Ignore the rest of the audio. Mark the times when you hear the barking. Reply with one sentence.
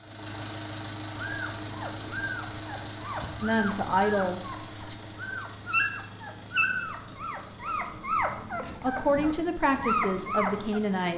You can hear the barking from 1.2 to 10.8 s.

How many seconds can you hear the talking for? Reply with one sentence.
You can hear the talking for 4 seconds altogether.